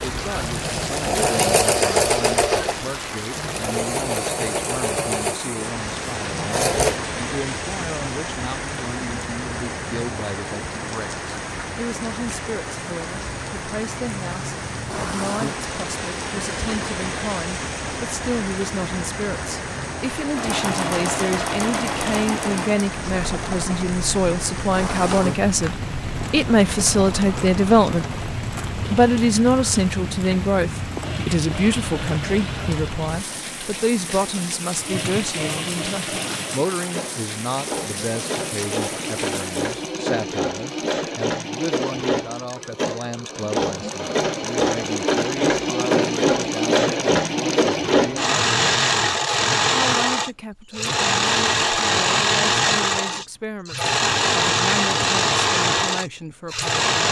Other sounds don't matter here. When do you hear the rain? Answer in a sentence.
The rain can be heard from 0.0 to 39.8 s.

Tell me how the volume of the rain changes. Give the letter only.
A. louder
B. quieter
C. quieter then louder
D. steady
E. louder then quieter
D.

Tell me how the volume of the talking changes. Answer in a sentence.
The volume of the talking goes up, then down.